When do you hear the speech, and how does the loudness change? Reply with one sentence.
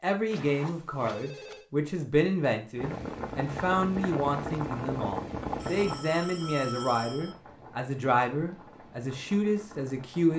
You can hear the speech from 0.0 to 10.3 s, at a steady volume.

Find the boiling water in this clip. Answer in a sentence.
You can hear the boiling water from 2.8 to 10.3 s.